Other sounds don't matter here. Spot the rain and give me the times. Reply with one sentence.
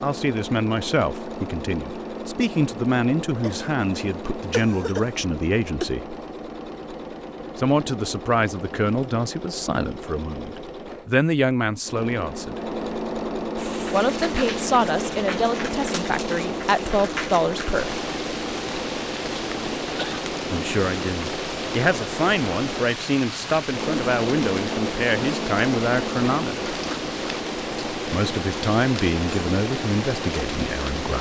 You can hear the rain from 13.6 to 31.1 s.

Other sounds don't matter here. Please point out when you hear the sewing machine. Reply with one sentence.
The sewing machine can be heard from 0.0 to 31.1 s.